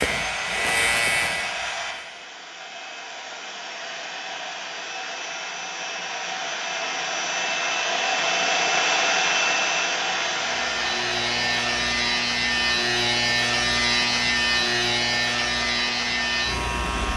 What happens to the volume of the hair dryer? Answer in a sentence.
The loudness of the hair dryer goes up, then down.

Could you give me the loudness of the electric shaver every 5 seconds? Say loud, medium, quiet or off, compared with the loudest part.
loud, off, loud, loud.